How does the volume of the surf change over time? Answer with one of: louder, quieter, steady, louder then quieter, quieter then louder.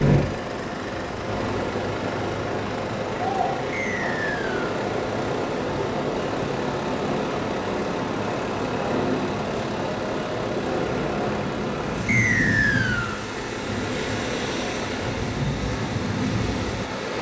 steady.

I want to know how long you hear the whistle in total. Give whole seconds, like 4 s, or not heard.
2 s.